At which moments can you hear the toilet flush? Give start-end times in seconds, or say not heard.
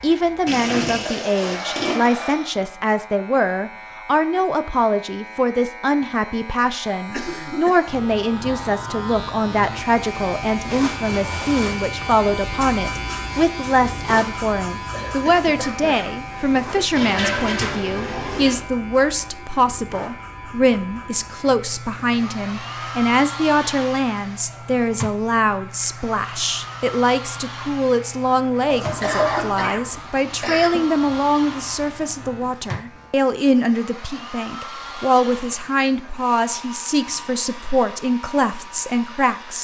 0.5-2.0, 16.9-18.6, 28.6-29.7.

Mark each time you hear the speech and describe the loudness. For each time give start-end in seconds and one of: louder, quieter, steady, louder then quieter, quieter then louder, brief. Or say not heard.
0.0-39.5 steady.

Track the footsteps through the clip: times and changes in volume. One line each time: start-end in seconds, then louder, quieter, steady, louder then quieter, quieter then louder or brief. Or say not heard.
not heard.